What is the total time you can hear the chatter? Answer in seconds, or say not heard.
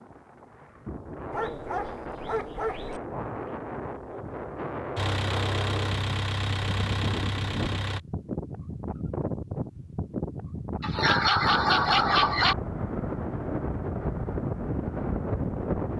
not heard.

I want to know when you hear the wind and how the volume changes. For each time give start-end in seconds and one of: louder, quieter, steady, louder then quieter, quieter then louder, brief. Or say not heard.
0.0-15.9 louder.